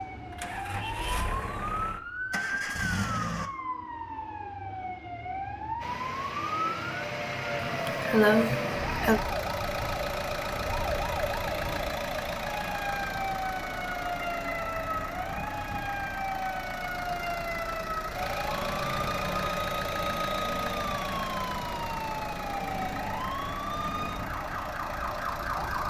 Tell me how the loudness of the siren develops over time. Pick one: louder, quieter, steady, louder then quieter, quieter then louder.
steady.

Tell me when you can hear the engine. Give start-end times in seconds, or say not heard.
0.1-3.5, 5.8-25.8.